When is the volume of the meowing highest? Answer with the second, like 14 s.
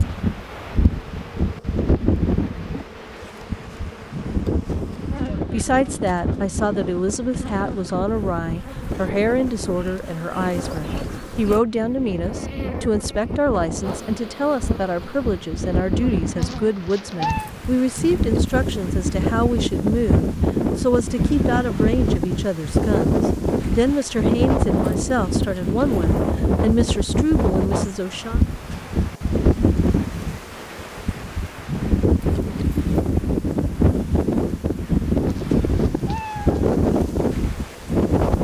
17 s.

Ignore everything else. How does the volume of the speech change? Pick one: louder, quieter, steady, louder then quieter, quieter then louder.
steady.